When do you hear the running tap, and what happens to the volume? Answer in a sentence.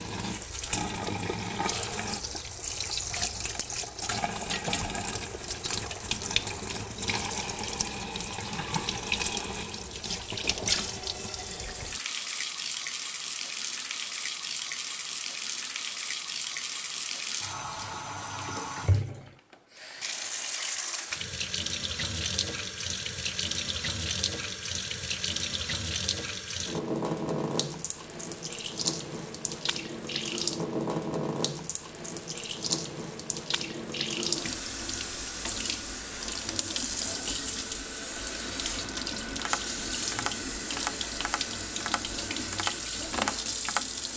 The running tap can be heard from 0.0 to 44.1 s, at a steady volume.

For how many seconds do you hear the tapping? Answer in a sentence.
The tapping can be heard for 5 seconds in total.